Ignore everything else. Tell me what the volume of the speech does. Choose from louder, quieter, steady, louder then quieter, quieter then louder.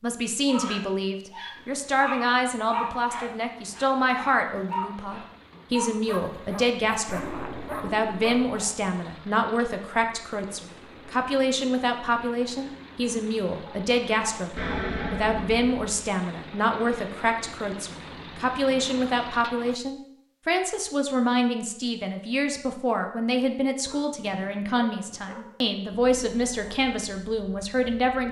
steady.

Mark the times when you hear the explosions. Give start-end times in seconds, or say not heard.
7.0-8.4, 14.6-15.9.